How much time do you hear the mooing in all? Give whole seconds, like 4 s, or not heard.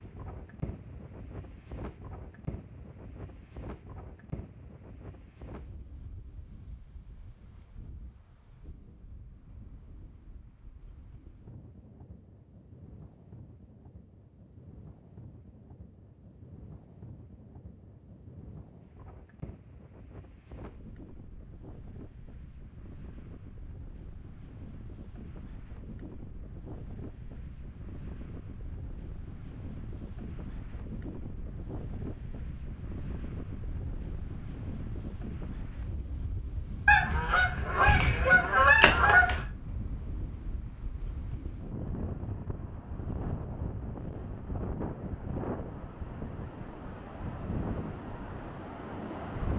not heard.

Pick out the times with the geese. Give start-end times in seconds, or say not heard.
36.9-39.5.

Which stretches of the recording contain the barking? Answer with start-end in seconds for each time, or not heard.
not heard.